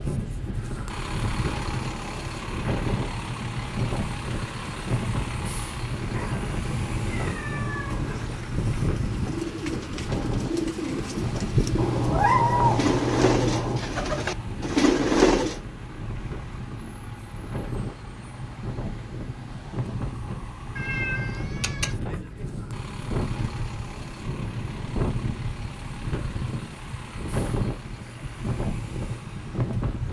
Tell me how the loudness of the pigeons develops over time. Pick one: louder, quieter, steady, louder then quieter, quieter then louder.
louder.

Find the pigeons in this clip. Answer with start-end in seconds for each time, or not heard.
7.8-15.6.